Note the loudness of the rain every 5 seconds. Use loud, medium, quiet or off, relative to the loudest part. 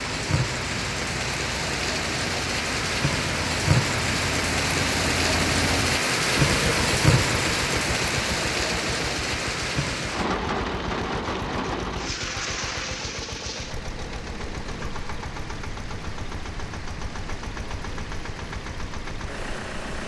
loud, loud, medium, quiet.